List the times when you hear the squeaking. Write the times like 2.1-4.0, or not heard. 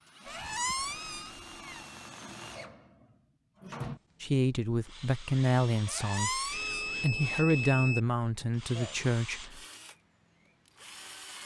0.2-1.9, 5.8-7.5.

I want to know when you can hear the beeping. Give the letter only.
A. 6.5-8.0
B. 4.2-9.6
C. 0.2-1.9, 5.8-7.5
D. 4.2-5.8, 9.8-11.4
A.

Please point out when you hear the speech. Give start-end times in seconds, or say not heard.
4.2-9.6.